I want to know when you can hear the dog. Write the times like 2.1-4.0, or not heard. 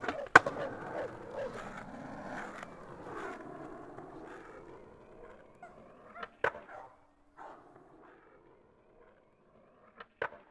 0.1-1.6, 5.6-8.1.